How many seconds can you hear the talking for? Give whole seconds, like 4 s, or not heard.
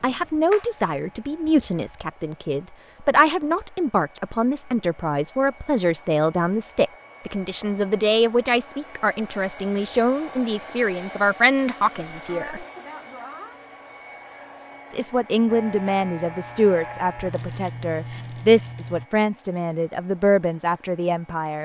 19 s.